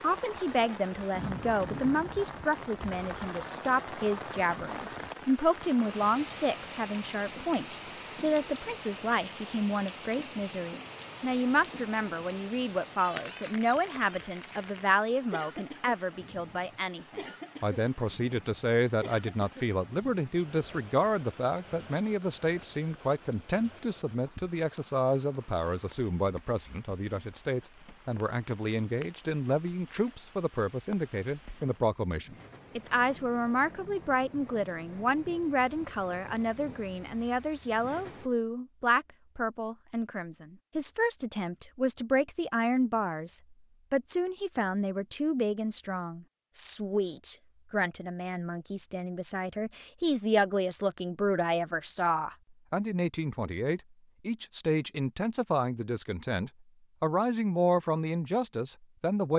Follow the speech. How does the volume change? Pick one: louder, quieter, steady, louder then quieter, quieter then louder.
steady.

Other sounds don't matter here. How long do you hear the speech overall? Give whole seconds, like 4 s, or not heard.
59 s.